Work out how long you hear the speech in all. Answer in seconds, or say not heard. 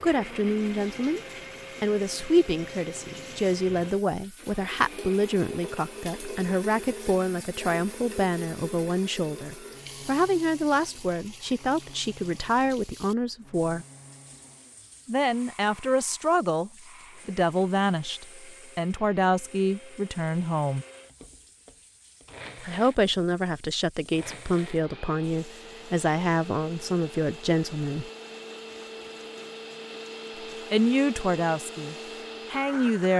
27 s.